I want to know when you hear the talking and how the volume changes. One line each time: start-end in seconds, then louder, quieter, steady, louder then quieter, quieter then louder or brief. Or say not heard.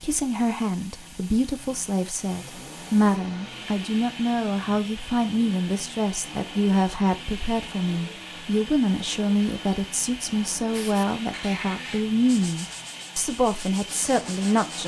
0.0-14.8 steady.